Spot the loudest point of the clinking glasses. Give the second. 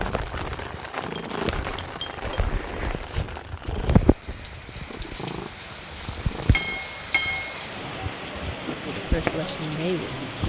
7 s.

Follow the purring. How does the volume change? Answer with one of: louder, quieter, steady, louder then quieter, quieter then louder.
louder then quieter.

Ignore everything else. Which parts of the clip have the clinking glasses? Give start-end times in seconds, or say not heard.
1.1-2.5, 6.5-7.6.